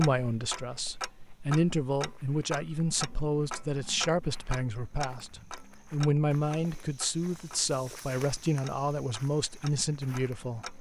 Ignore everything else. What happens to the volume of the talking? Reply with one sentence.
The loudness of the talking stays about the same.